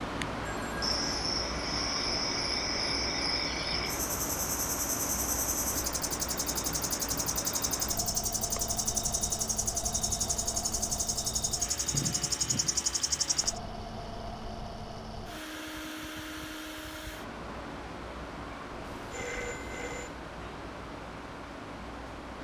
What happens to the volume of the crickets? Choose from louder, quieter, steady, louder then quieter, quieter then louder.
steady.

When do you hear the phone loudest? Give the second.
19 s.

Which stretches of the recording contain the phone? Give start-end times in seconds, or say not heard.
0.5-1.0, 18.8-20.1.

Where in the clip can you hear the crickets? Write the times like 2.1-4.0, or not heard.
0.0-13.6.